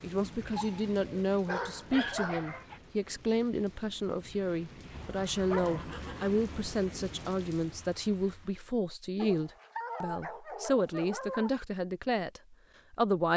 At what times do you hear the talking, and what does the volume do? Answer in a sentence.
The talking can be heard from 0.0 to 13.3 s, at a steady volume.